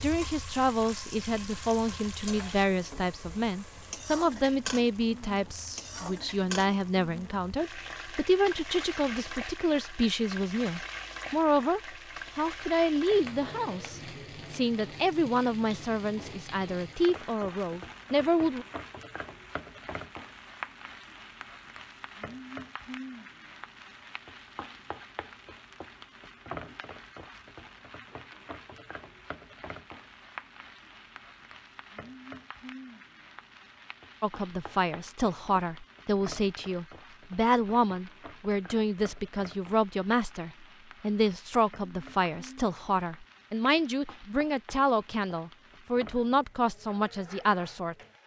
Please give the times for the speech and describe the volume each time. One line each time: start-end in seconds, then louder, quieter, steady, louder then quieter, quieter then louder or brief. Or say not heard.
0.0-18.6 steady
34.2-48.0 steady.